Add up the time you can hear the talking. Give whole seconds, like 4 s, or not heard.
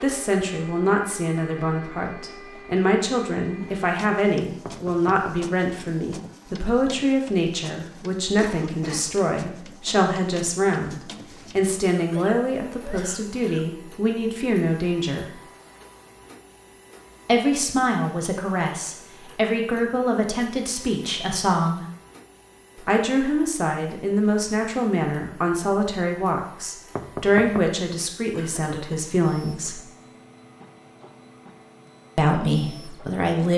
28 s.